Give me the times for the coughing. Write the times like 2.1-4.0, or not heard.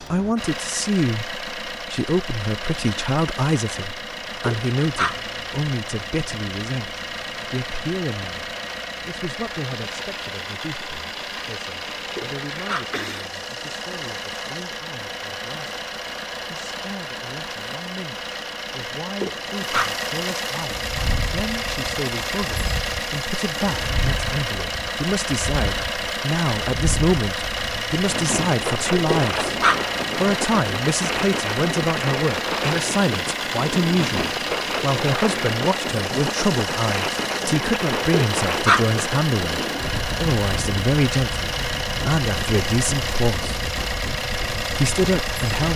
12.9-13.3.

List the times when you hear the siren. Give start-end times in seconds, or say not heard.
not heard.